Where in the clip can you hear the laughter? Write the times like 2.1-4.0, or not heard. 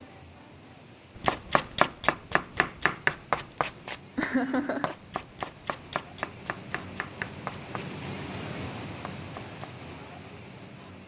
4.2-5.0.